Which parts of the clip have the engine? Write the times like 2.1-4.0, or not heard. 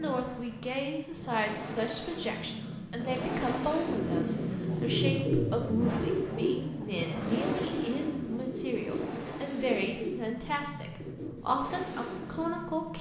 0.0-12.9.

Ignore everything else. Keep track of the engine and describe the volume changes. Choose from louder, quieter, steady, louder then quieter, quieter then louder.
louder then quieter.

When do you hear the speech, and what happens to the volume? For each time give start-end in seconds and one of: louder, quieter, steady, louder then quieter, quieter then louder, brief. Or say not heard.
0.0-12.9 steady.